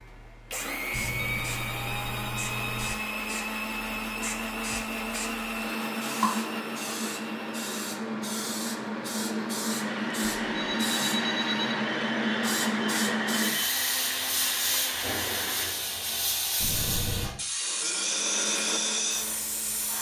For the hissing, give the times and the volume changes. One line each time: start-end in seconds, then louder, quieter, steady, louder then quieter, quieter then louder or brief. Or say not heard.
0.0-19.9 louder.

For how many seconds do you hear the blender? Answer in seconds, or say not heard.
18 s.